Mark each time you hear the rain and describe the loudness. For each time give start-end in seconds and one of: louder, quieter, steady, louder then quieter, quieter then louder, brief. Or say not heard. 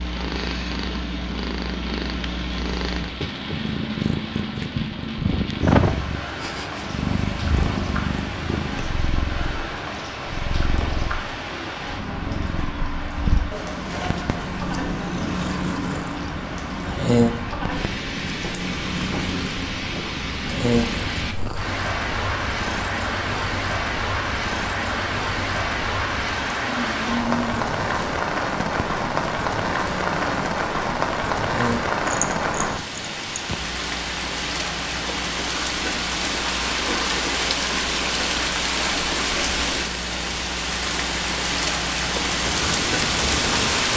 0.0-43.9 louder.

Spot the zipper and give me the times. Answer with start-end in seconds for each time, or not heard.
13.5-14.6.